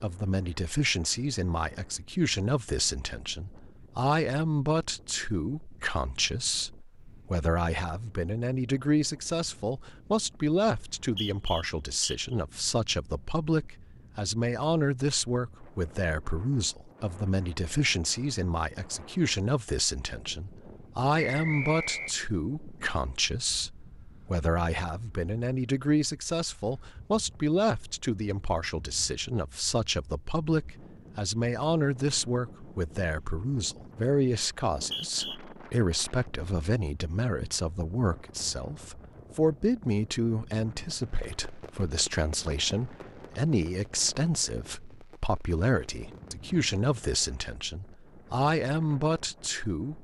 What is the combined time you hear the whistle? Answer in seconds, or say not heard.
3 s.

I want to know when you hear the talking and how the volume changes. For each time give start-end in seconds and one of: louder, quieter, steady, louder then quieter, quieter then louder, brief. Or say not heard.
0.0-49.9 steady.